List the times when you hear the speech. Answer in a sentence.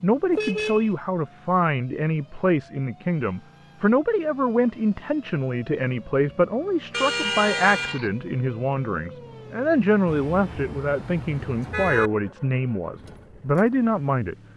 The speech can be heard from 0.0 to 14.3 s.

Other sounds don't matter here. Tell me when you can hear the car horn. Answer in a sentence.
You can hear the car horn from 0.3 to 0.9 s, from 6.9 to 8.1 s and from 10.1 to 12.1 s.